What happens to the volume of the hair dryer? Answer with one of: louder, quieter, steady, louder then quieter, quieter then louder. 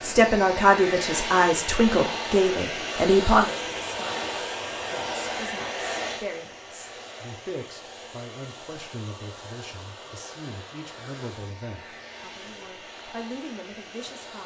quieter.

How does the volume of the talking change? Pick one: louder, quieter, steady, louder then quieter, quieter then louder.
quieter.